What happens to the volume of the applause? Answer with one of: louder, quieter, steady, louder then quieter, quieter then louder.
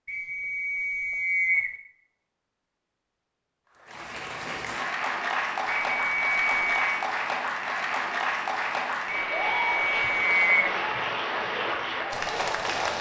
steady.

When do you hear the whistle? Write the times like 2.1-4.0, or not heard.
0.1-1.8, 5.8-7.0, 9.2-10.8.